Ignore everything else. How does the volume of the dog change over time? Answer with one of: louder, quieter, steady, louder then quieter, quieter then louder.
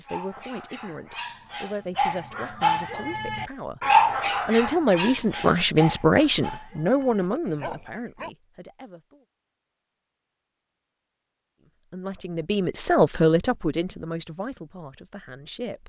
louder then quieter.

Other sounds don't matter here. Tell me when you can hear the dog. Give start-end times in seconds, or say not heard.
0.1-8.3.